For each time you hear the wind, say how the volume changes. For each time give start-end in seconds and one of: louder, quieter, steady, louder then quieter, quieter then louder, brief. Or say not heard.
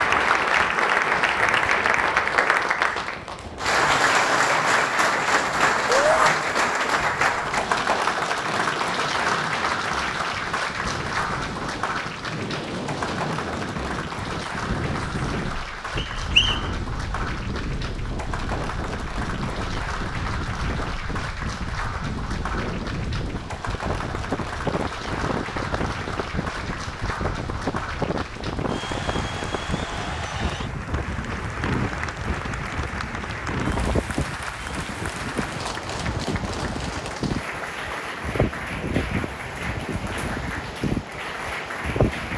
0.0-42.3 louder.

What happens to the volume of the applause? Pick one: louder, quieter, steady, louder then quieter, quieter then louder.
quieter.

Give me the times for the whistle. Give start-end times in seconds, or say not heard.
15.9-16.7.